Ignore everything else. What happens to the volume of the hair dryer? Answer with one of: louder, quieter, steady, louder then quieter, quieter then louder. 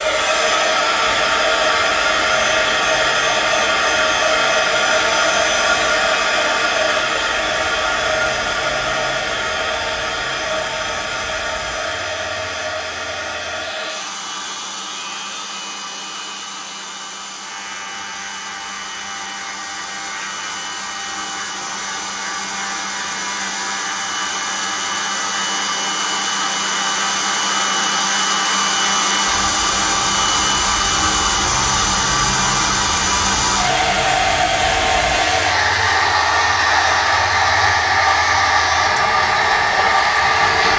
quieter then louder.